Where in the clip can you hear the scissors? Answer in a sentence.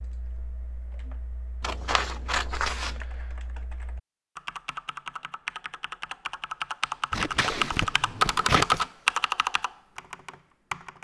You can hear the scissors from 1.6 to 3.0 s and from 7.1 to 8.8 s.